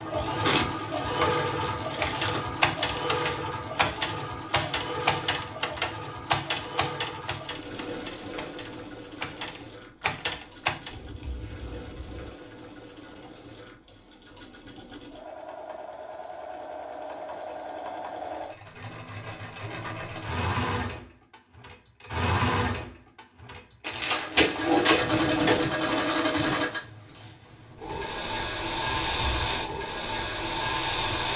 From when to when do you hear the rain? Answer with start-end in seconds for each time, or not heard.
not heard.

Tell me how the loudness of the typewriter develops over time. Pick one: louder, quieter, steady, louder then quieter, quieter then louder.
quieter then louder.